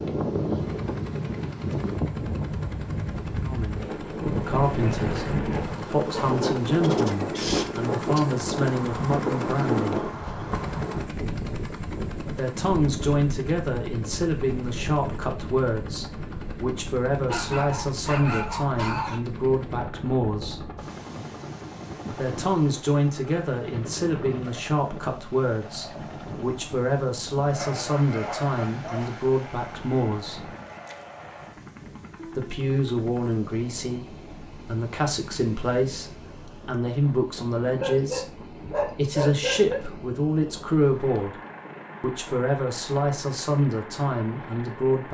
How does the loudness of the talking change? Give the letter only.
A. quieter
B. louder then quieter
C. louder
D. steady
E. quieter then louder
D.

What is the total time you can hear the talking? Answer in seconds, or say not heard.
35 s.